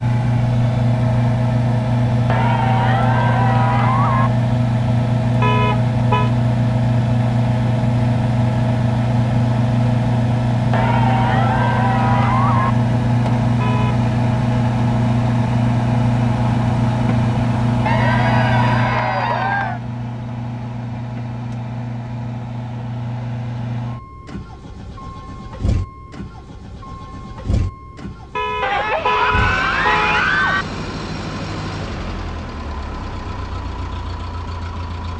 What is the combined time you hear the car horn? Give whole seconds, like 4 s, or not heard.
3 s.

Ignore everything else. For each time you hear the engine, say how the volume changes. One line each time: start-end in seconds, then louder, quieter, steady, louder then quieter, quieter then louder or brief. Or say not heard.
0.0-35.1 quieter.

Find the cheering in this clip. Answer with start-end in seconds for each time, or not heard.
2.2-4.3, 10.7-12.8, 17.9-19.8, 28.6-30.6.